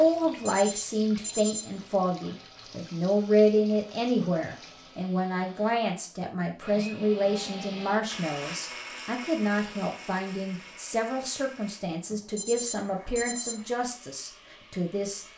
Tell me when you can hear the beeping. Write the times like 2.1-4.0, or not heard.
0.5-1.9, 12.3-13.6.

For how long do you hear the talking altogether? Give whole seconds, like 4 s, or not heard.
15 s.